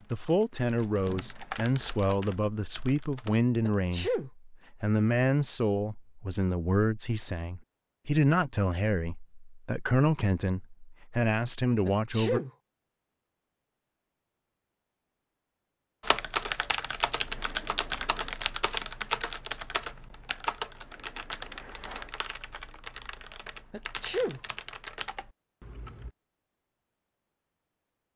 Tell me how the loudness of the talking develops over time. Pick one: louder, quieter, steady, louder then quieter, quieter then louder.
steady.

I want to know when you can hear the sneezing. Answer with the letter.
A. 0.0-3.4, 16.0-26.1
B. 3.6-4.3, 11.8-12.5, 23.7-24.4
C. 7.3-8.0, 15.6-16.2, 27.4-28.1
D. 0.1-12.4
B.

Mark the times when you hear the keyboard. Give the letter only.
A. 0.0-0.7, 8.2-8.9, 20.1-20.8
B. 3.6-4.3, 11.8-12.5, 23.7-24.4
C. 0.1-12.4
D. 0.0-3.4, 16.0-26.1
D.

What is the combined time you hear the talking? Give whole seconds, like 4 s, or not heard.
12 s.